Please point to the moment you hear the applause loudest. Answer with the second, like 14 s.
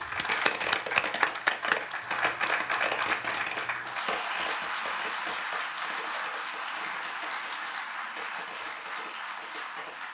1 s.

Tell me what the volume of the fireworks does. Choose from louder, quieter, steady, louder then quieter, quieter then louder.
quieter.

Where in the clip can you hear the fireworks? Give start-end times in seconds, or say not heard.
0.0-10.0.